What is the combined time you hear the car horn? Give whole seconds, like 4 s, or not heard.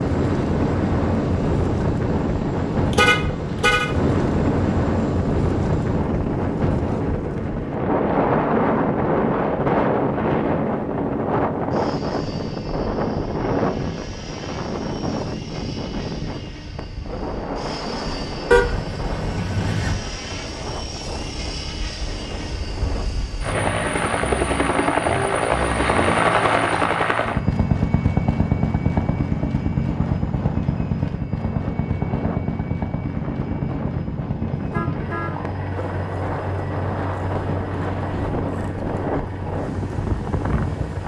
3 s.